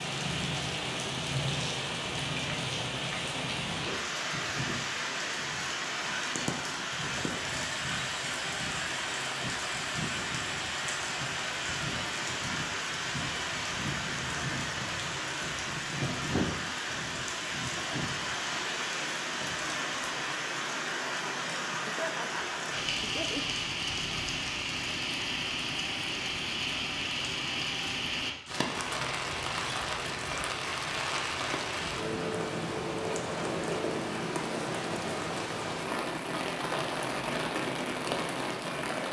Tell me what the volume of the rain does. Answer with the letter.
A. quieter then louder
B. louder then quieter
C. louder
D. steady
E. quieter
D.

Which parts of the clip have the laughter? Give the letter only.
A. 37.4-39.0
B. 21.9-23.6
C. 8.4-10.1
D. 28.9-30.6
B.